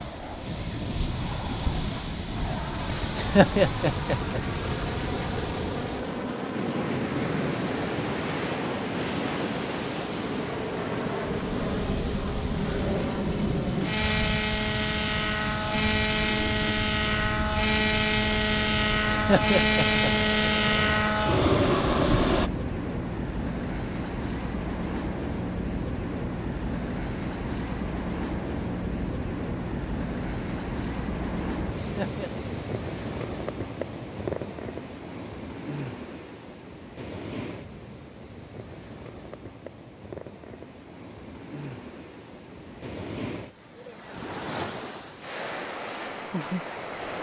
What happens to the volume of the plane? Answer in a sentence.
The loudness of the plane goes up.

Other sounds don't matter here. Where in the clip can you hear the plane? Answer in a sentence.
You can hear the plane from 0.0 to 22.5 s.